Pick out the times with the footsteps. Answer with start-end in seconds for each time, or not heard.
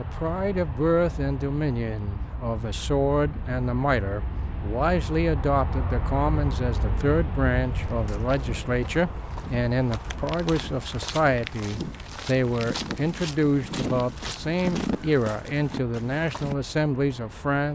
7.8-16.6.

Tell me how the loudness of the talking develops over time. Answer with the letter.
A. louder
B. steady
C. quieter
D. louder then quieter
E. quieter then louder
B.